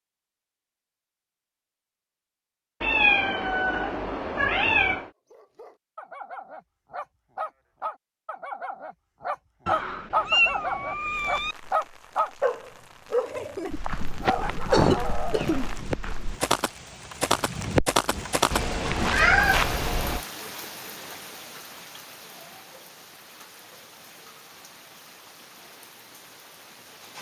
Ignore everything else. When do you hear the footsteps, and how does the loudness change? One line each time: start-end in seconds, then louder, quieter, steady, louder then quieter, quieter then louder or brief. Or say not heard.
13.7-19.9 louder.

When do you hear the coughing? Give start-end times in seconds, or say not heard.
14.2-15.7.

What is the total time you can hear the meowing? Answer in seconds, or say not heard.
6 s.